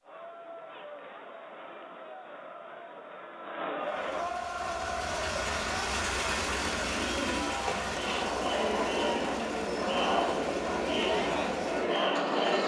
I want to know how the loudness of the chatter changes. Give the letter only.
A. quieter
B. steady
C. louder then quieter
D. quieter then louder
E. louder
E.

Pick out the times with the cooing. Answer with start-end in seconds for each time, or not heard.
6.8-8.3.